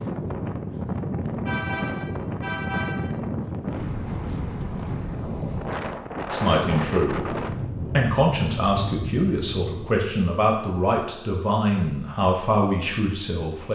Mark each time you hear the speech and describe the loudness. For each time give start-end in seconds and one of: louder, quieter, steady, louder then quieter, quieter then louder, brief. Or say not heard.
6.3-13.7 steady.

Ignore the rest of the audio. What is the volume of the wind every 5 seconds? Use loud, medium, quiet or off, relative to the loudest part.
loud, loud, off.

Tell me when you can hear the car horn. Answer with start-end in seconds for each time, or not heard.
1.4-3.1.